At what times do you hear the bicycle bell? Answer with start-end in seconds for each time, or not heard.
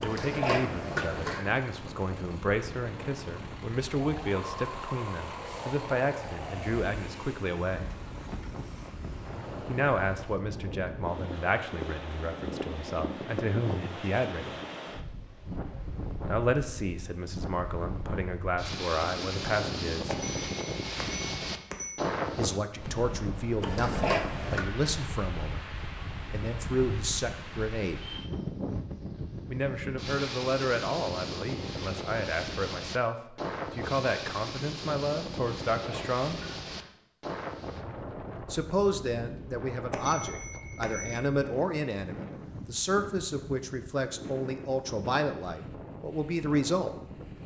20.1-22.0, 39.9-41.2.